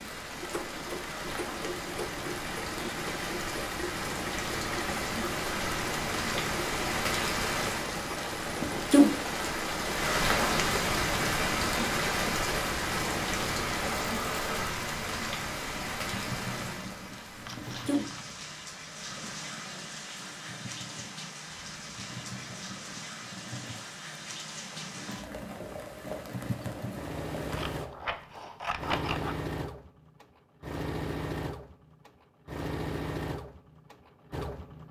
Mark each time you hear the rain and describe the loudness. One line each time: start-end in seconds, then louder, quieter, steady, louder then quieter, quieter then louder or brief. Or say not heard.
0.0-27.9 louder then quieter.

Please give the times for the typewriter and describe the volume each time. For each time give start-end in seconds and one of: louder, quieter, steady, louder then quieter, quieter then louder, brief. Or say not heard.
not heard.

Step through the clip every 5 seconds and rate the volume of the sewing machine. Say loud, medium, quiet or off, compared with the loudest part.
loud, loud, loud, medium, medium, loud, loud.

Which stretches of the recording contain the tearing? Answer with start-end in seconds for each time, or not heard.
not heard.